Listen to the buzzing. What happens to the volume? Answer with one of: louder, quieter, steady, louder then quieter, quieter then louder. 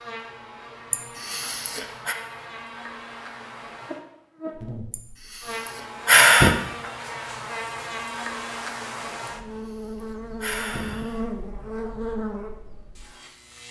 louder.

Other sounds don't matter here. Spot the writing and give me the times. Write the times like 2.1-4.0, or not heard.
not heard.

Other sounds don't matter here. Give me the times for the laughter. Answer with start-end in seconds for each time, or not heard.
not heard.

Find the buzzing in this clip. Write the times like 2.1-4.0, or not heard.
0.0-13.6.